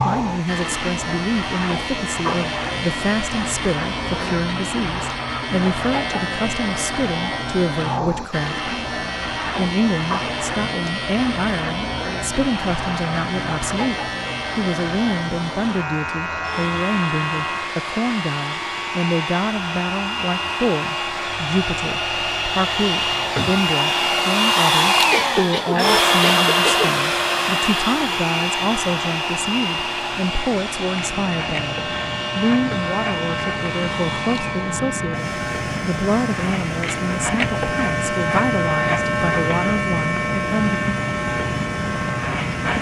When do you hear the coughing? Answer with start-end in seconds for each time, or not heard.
25.1-26.9.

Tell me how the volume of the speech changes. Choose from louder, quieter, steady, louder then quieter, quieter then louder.
steady.